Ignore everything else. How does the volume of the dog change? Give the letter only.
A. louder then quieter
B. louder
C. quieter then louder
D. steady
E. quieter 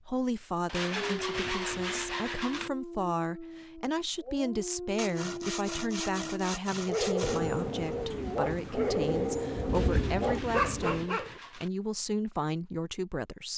B.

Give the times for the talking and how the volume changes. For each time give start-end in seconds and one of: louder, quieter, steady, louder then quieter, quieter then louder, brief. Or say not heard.
0.1-13.5 steady.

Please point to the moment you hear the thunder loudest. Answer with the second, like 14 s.
10 s.